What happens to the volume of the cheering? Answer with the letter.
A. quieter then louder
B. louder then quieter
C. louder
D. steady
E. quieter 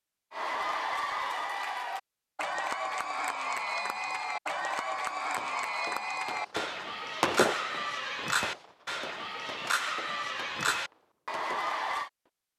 D.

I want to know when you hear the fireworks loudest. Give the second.
7 s.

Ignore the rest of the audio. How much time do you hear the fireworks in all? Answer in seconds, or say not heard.
7 s.